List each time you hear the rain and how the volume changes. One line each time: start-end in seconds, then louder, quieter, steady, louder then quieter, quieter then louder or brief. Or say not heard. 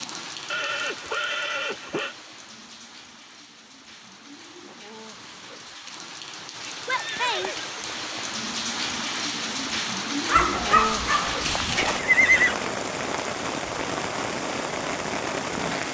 0.0-15.8 louder.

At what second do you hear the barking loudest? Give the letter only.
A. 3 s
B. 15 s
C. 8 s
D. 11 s
D.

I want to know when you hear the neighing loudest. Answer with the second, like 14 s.
12 s.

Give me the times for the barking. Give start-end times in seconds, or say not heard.
10.2-12.0.